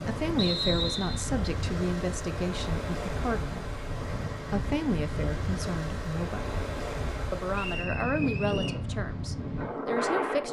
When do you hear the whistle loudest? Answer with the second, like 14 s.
1 s.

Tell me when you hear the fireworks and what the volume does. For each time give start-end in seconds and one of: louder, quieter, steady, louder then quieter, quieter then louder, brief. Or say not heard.
not heard.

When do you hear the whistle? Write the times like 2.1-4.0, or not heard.
0.3-1.2, 7.5-8.8.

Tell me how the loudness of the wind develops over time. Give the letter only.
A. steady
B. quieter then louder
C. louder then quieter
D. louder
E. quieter
A.